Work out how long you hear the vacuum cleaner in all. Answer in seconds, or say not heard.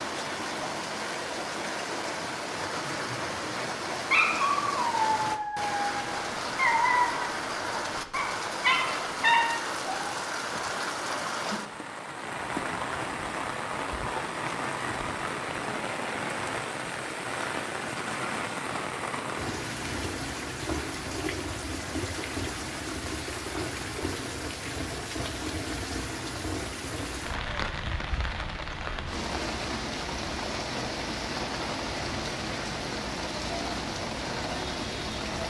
not heard.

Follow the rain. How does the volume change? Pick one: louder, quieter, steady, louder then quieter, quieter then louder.
steady.